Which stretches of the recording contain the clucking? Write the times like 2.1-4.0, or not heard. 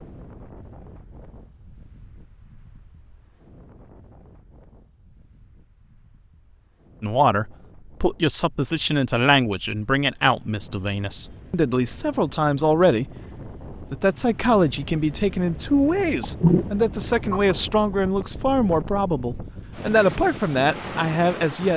16.2-17.9.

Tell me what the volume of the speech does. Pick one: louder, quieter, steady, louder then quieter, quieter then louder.
steady.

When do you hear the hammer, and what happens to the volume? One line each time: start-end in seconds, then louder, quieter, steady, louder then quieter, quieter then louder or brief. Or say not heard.
not heard.